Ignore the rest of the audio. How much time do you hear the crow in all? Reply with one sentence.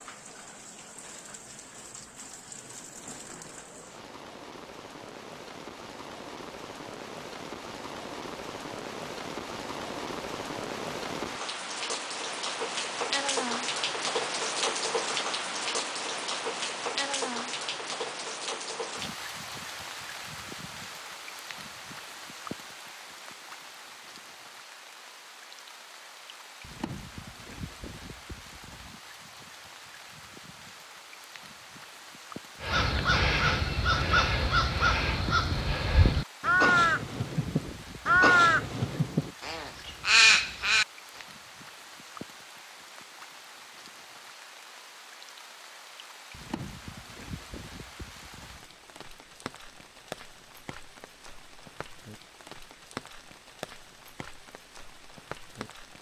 You can hear the crow for 8 seconds altogether.